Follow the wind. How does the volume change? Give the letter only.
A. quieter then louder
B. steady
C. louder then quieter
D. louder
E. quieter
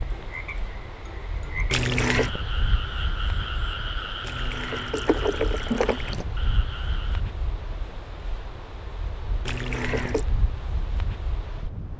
B.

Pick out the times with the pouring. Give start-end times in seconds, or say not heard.
1.7-2.3, 4.2-6.2, 9.4-10.2.